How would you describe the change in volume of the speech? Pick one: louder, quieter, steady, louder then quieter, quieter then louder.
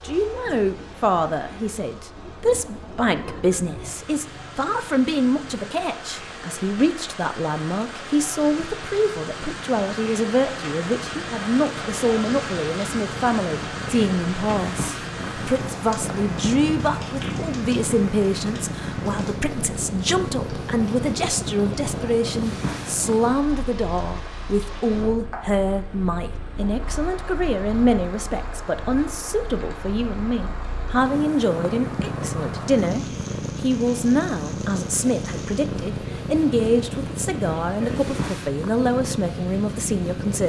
steady.